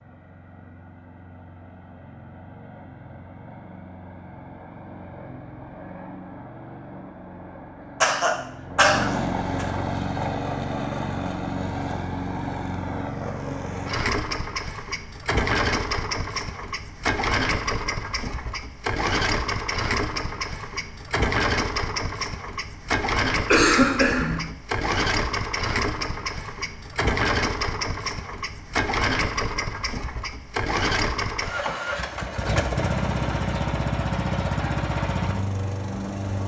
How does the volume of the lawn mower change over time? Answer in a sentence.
The loudness of the lawn mower goes up.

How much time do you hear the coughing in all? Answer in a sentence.
You can hear the coughing for 3 seconds altogether.